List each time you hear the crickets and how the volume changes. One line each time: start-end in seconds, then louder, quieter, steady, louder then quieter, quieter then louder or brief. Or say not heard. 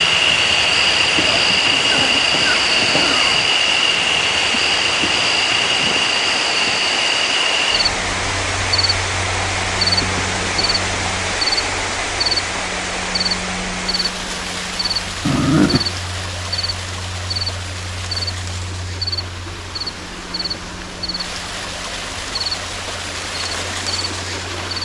0.0-24.7 quieter.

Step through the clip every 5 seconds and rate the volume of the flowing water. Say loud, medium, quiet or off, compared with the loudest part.
loud, loud, loud, medium, medium.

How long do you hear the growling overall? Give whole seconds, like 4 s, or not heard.
3 s.